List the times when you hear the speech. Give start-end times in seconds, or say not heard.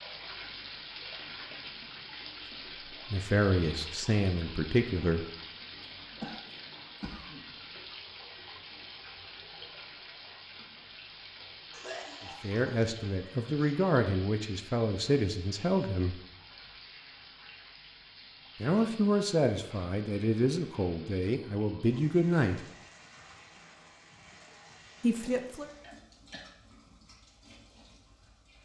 3.1-5.2, 12.4-16.2, 18.6-22.6, 25.0-25.7.